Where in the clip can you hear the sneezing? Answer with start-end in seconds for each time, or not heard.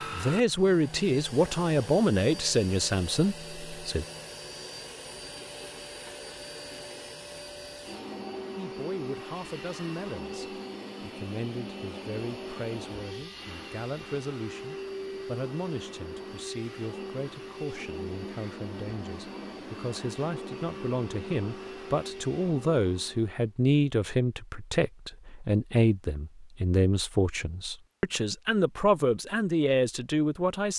not heard.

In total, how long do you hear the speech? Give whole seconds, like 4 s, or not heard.
26 s.